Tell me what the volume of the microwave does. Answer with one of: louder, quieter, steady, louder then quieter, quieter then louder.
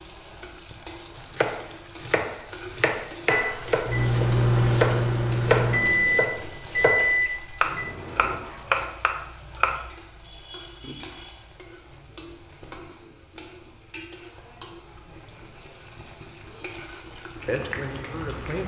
quieter.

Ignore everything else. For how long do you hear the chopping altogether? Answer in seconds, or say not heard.
9 s.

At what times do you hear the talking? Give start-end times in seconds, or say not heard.
17.4-18.6.